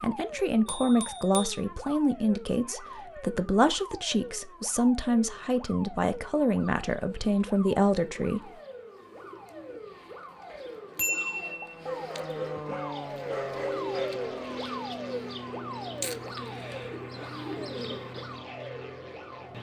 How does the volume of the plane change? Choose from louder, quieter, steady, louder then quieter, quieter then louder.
louder then quieter.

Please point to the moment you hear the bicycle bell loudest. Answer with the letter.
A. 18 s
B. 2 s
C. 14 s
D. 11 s
D.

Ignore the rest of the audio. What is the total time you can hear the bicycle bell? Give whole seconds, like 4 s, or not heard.
2 s.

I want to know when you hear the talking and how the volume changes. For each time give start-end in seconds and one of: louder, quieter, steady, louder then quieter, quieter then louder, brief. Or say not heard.
0.0-8.4 steady.